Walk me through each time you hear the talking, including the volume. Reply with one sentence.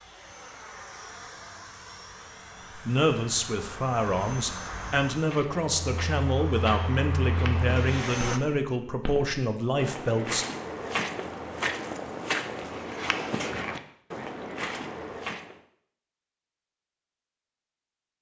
The talking can be heard from 2.8 to 10.4 s, at a steady volume.